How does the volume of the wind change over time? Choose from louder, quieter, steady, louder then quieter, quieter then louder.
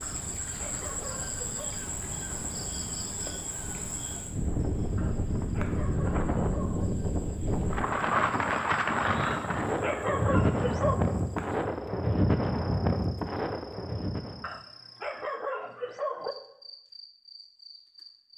louder.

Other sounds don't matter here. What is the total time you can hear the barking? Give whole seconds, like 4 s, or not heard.
7 s.